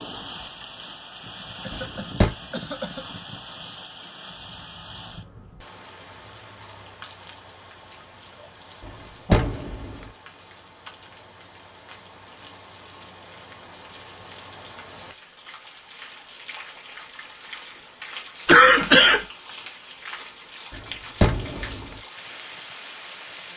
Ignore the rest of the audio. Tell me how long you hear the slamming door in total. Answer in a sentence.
The slamming door can be heard for 3 seconds in total.